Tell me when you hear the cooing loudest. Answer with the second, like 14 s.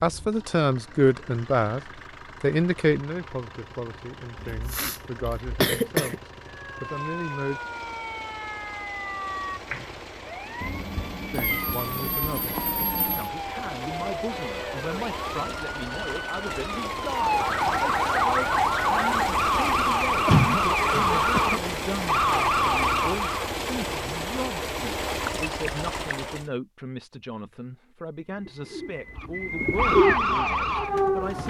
30 s.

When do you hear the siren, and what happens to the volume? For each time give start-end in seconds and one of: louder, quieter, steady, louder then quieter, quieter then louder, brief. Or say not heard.
6.5-23.5 louder
29.1-31.4 brief.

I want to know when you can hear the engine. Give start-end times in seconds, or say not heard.
0.0-26.5.